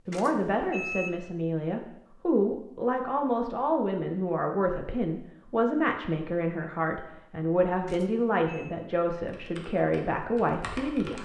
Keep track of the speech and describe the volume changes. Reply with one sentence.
The loudness of the speech stays about the same.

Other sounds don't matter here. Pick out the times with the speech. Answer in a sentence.
You can hear the speech from 0.1 to 11.2 s.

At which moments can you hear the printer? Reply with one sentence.
The printer can't be heard in this clip.